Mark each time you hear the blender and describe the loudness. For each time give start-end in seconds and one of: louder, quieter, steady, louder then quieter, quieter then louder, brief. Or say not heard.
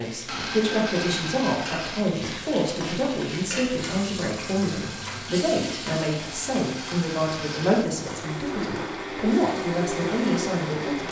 0.1-2.0 brief
4.3-11.0 louder.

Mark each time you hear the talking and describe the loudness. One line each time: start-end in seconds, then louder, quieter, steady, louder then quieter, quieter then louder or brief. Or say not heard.
0.0-11.0 steady.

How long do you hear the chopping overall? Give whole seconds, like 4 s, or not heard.
not heard.